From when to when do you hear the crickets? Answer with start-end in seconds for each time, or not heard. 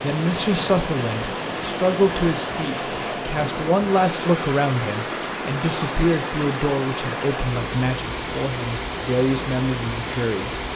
not heard.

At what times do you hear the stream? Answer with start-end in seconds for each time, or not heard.
0.0-10.7.